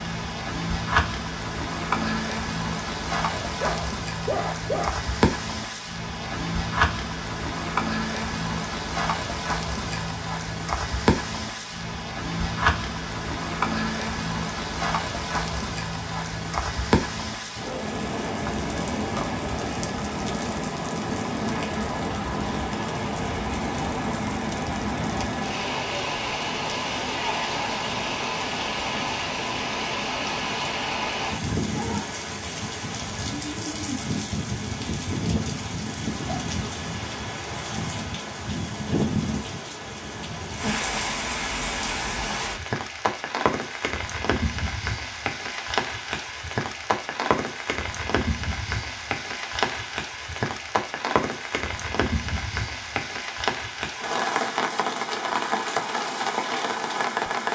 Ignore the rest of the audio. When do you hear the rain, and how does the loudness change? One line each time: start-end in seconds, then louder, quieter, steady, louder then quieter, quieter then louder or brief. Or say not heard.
0.0-57.5 steady.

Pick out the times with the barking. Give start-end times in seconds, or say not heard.
3.4-5.0.